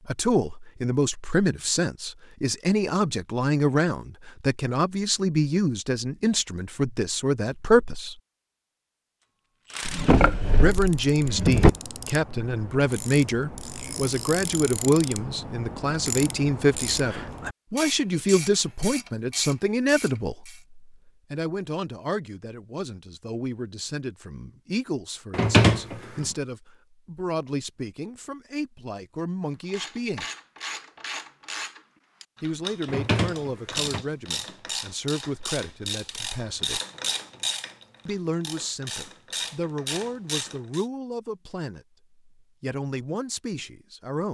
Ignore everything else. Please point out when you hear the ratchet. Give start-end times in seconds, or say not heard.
9.7-20.6, 29.6-40.9.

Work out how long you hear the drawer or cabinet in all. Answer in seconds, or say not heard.
4 s.